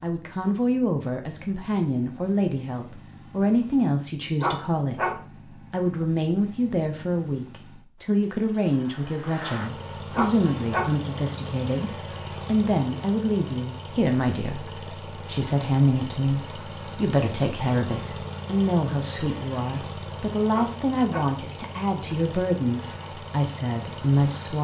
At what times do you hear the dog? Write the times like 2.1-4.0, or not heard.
4.4-5.2, 10.1-10.9, 20.5-21.4.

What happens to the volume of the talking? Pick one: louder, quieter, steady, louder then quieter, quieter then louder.
steady.